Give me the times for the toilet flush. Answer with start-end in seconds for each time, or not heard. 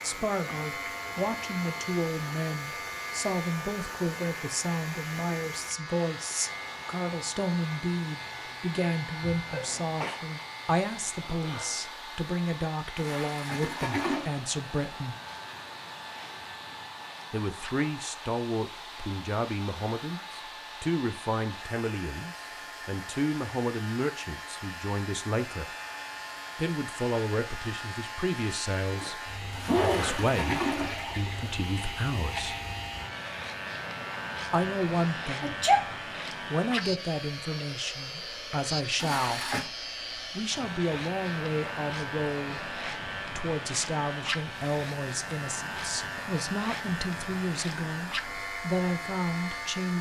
12.9-14.2, 29.5-31.5, 39.0-39.7.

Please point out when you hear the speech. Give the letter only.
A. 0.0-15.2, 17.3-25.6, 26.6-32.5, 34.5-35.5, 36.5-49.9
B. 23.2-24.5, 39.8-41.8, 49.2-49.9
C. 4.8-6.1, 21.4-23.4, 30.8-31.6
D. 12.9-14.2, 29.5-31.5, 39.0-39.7
A.